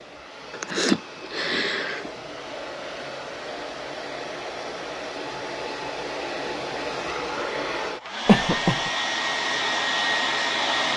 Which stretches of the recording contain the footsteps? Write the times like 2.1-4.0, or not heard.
not heard.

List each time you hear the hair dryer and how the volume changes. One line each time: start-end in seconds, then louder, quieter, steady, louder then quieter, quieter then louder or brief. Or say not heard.
0.0-10.9 louder.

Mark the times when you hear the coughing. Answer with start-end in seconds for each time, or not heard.
0.5-2.1, 8.2-8.9.